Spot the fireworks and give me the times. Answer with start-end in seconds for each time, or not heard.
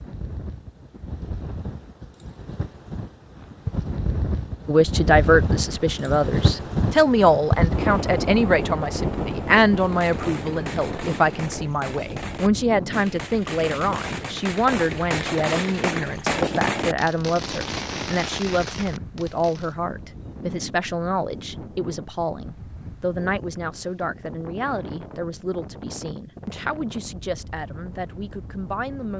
9.8-19.8.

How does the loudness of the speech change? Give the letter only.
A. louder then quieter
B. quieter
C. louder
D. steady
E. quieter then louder
B.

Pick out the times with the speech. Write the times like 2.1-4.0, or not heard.
4.7-29.1.